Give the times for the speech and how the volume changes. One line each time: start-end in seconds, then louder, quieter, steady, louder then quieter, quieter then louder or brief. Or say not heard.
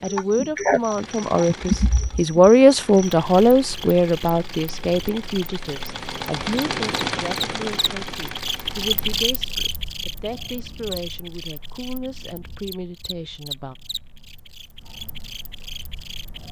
0.0-13.8 quieter.